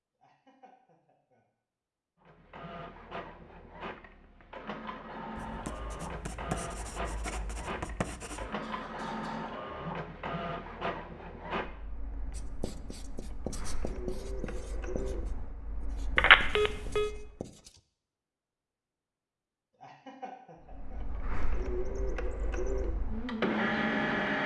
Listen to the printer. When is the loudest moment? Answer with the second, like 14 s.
24 s.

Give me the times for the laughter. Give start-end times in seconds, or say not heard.
0.2-1.4, 8.6-9.5, 19.8-21.0.